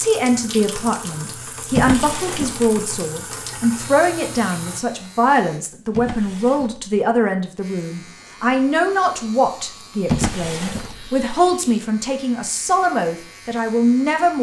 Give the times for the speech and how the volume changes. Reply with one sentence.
You can hear the speech from 0.0 to 14.3 s, at a steady volume.